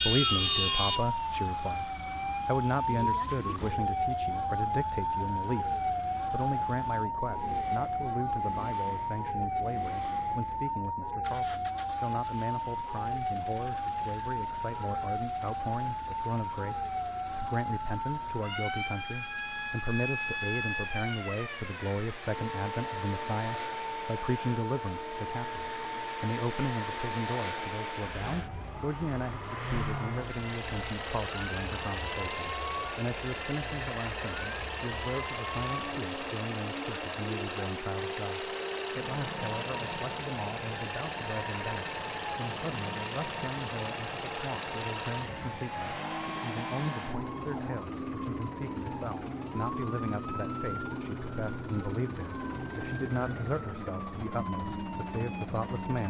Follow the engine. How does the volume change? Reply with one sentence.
The loudness of the engine goes up.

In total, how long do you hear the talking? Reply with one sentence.
You can hear the talking for 56 seconds altogether.